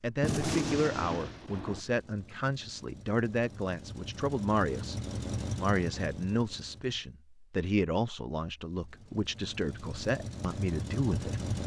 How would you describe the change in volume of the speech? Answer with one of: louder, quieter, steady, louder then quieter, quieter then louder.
steady.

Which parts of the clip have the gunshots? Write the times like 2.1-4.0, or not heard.
0.2-1.8.